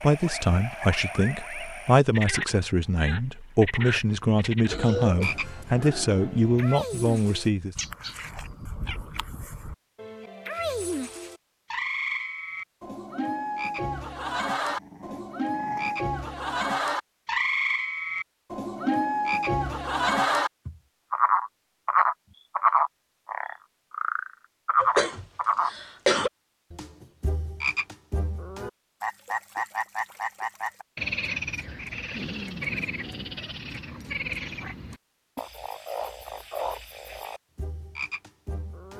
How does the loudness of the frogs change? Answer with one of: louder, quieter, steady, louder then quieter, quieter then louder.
louder then quieter.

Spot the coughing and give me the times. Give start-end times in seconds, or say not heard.
4.7-5.5, 24.8-26.3.